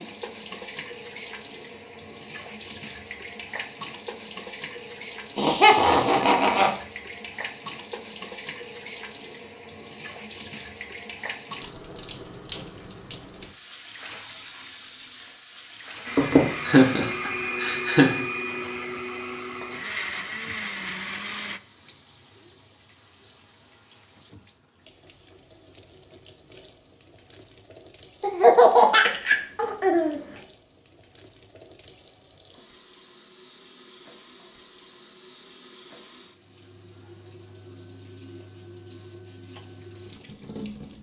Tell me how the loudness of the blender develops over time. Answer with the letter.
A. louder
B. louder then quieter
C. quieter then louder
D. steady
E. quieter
D.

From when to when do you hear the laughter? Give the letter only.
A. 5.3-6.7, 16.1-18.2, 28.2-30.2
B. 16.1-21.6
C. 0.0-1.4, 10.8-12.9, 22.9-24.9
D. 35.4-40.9
A.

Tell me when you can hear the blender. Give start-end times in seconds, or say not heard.
16.1-21.6.